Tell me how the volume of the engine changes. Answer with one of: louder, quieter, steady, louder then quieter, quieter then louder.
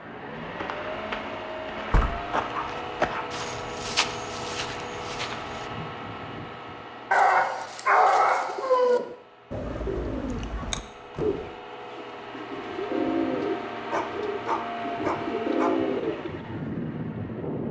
quieter then louder.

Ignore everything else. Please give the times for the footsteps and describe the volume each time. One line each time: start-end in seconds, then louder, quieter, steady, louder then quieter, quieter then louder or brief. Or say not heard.
0.3-5.7 louder then quieter.